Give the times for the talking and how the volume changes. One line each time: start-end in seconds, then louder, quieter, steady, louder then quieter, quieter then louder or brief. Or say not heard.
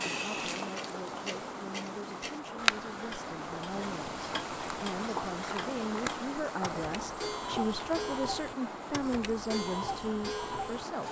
0.0-11.0 louder.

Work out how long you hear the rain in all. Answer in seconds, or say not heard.
11 s.